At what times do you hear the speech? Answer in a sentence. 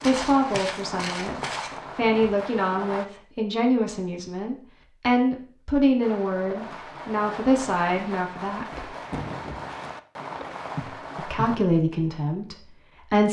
The speech can be heard from 0.0 to 8.9 s and from 11.2 to 13.2 s.